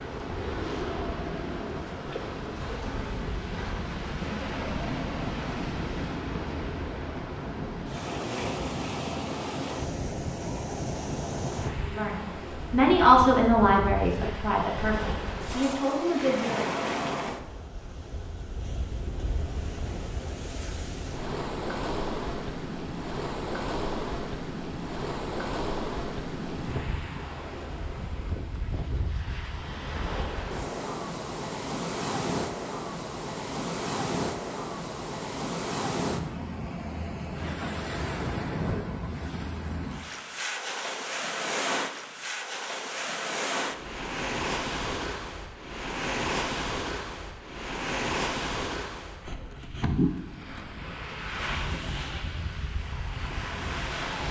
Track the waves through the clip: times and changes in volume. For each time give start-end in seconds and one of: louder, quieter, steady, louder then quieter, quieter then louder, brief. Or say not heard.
0.0-54.2 steady.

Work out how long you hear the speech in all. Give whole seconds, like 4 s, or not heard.
5 s.